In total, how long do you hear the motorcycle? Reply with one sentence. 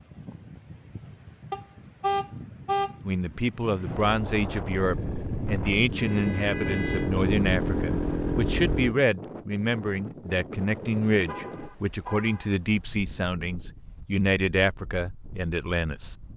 You can hear the motorcycle for 4 seconds altogether.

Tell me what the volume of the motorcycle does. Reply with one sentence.
The loudness of the motorcycle goes up.